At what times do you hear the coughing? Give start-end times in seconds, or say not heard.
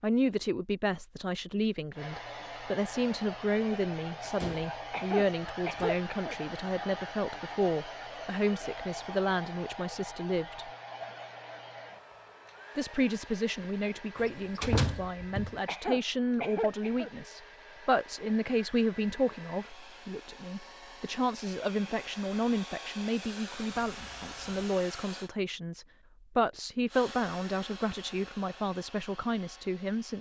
4.9-6.3, 15.7-17.1.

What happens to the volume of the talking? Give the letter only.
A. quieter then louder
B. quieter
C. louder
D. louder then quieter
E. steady
E.